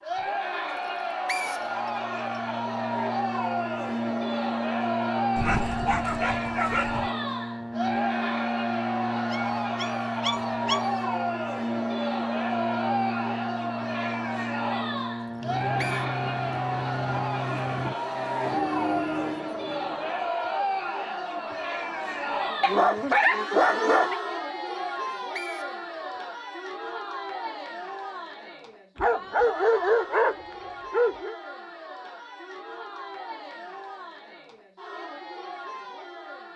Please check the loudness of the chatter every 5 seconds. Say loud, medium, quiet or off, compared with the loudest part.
loud, loud, loud, loud, loud, medium, medium, medium.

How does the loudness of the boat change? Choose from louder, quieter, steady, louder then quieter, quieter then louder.
steady.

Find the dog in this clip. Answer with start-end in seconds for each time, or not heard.
5.3-7.1, 9.3-10.9, 22.6-24.1, 28.9-31.4.